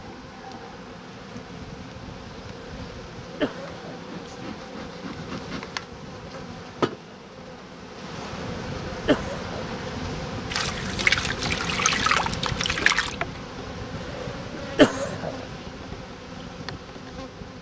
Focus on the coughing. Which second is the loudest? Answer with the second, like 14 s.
15 s.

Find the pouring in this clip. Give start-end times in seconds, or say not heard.
10.5-13.2.